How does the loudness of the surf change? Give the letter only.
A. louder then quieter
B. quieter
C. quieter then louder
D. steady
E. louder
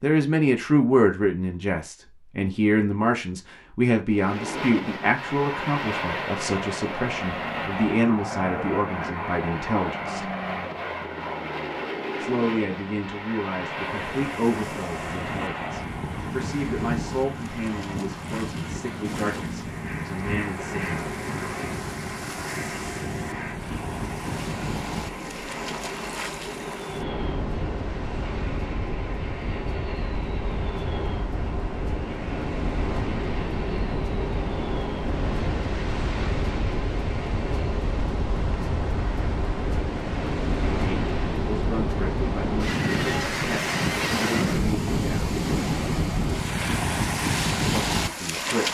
E.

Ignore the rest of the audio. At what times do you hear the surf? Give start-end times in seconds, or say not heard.
13.8-48.6.